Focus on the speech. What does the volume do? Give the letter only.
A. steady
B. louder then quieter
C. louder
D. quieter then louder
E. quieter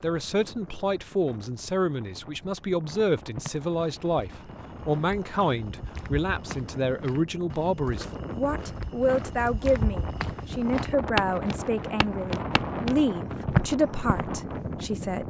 A.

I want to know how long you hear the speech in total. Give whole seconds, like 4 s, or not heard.
15 s.